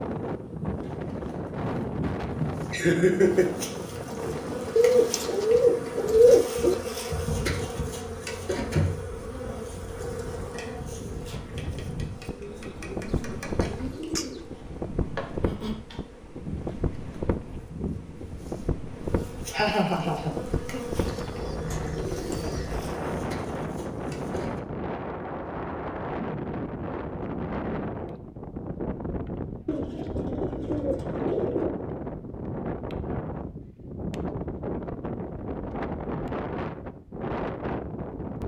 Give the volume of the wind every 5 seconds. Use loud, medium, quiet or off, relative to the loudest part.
loud, medium, medium, loud, loud, loud, loud, loud.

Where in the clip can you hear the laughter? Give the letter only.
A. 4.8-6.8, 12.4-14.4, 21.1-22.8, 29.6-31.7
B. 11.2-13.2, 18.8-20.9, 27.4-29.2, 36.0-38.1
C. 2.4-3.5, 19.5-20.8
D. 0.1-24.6
C.